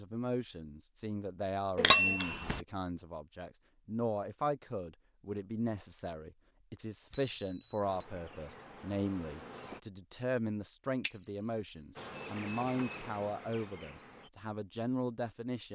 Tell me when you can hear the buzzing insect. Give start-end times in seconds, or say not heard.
7.8-9.8, 11.9-14.3.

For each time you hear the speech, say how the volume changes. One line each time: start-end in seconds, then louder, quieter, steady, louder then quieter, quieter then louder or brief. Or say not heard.
0.0-15.7 steady.